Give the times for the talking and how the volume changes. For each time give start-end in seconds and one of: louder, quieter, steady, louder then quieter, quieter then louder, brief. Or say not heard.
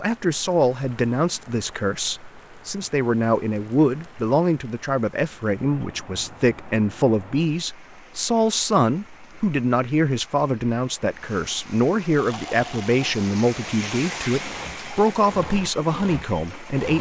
0.0-16.9 steady.